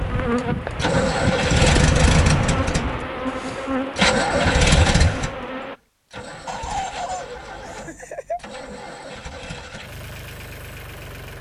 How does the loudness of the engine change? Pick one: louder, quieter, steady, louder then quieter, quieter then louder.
quieter.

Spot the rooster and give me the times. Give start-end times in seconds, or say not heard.
6.5-8.4.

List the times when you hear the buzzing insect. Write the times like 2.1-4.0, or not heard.
0.0-5.8.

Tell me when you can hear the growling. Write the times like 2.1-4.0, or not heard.
not heard.